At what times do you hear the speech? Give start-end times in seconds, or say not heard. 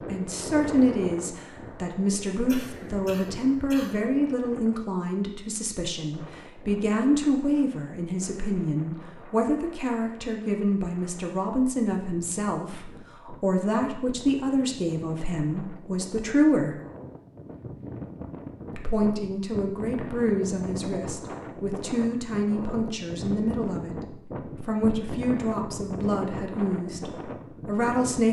0.1-16.8, 18.7-28.2.